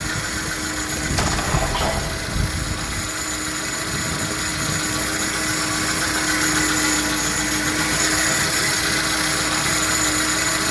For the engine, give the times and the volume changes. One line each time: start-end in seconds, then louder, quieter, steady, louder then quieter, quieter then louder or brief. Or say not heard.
0.0-10.6 louder.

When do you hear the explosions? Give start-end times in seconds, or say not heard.
0.9-2.4.